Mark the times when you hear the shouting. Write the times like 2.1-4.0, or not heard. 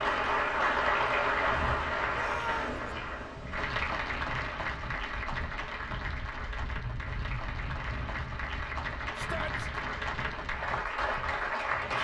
2.1-2.9, 9.2-9.8.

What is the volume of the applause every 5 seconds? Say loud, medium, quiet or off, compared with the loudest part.
loud, medium, loud.